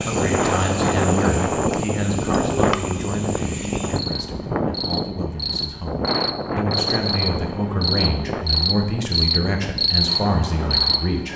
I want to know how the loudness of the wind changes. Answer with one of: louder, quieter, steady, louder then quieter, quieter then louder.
quieter.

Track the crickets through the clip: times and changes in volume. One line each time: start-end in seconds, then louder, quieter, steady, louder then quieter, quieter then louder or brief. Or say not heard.
0.0-11.3 louder.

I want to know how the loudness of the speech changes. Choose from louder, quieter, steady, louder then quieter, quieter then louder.
quieter then louder.